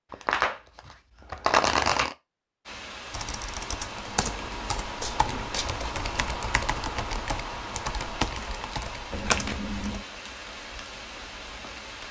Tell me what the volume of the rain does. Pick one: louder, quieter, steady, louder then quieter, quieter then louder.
steady.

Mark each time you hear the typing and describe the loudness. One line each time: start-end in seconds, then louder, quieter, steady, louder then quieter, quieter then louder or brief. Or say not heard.
3.1-10.0 steady.